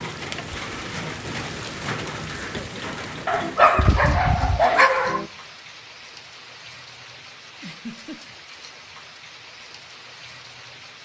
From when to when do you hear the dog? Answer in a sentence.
The dog can be heard from 3.2 to 5.2 s.